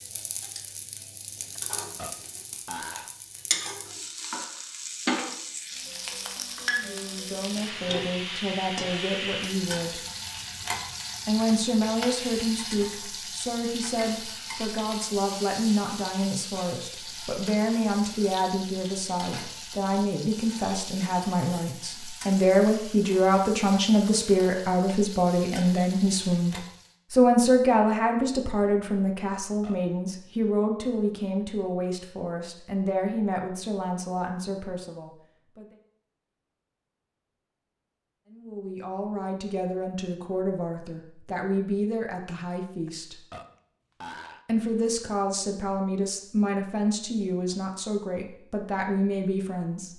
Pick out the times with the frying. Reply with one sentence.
The frying can be heard from 0.0 to 26.9 s.